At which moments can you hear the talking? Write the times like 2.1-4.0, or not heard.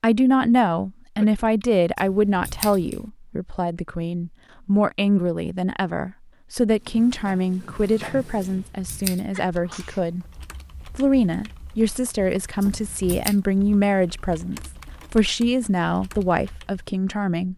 0.0-10.2, 10.9-17.5.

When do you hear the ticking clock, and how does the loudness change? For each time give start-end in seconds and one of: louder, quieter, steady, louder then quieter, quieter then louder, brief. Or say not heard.
not heard.